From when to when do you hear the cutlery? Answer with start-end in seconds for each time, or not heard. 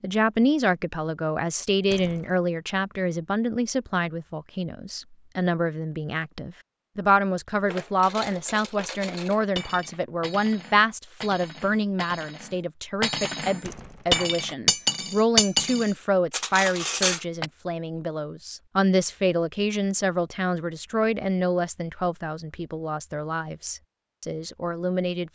7.7-17.4.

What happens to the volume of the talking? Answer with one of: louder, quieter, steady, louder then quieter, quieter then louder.
steady.